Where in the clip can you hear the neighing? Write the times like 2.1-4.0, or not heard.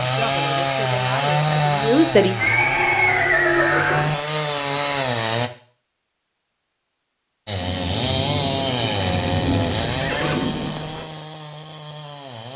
2.4-4.2, 9.8-11.1.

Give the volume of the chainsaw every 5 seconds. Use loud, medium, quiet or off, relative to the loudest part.
loud, loud, medium.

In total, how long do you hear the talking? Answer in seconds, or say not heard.
2 s.